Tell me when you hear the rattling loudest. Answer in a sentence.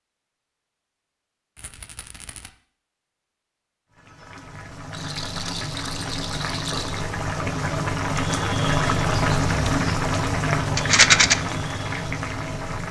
The volume of the rattling peaks at 11 seconds.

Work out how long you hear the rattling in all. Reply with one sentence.
You can hear the rattling for 4 seconds altogether.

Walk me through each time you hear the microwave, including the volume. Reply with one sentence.
The microwave can't be heard in this clip.